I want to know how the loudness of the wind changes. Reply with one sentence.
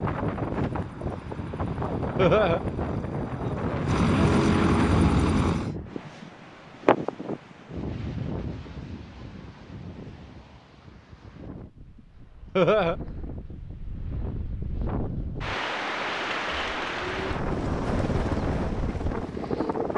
The volume of the wind goes down, then up.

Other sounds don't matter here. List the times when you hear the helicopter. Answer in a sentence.
You can hear the helicopter from 0.0 to 5.7 s and from 16.9 to 19.9 s.